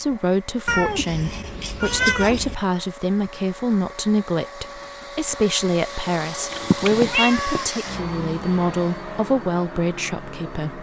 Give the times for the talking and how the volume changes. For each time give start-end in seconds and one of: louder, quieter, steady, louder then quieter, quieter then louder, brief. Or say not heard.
0.0-10.7 steady.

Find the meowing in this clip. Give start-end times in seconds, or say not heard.
0.7-2.5, 6.5-7.7.